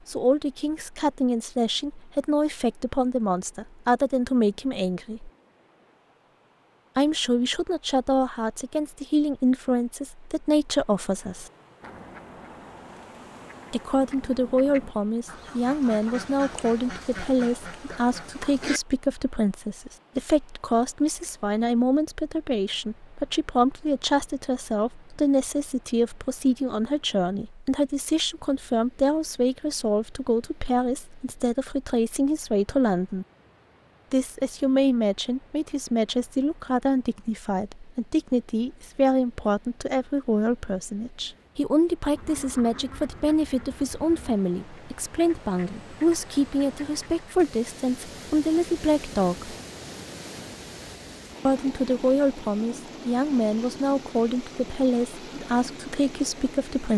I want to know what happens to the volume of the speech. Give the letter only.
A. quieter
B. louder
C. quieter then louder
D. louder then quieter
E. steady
E.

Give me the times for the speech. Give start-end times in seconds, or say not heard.
0.1-5.3, 7.0-11.5, 13.7-33.2, 34.1-49.5, 51.5-56.9.